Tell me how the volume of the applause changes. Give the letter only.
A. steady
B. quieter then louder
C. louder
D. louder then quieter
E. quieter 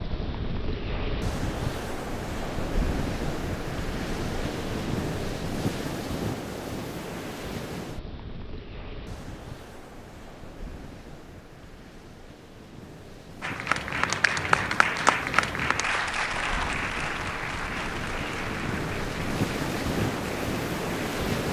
E.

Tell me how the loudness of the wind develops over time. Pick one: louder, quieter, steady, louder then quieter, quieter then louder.
quieter then louder.